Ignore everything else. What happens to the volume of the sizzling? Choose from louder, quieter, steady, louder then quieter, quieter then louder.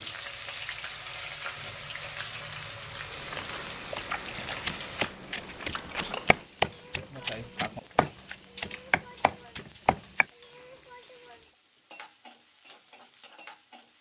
quieter.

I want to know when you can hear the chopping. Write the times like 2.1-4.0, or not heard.
4.7-10.2.